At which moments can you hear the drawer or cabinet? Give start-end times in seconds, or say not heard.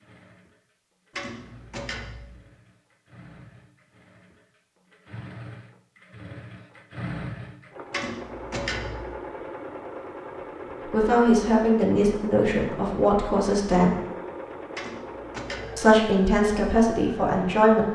1.1-2.4, 7.9-9.2, 14.8-15.9.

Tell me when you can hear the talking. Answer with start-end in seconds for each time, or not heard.
10.8-14.0, 15.8-17.9.